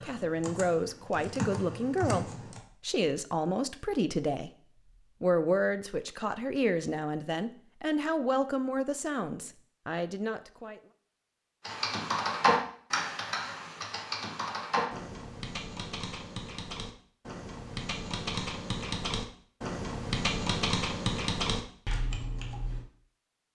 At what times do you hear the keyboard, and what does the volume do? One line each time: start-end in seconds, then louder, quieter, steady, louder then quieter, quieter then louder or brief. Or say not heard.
0.0-2.6 brief
11.7-22.9 quieter then louder.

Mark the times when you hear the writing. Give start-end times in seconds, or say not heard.
not heard.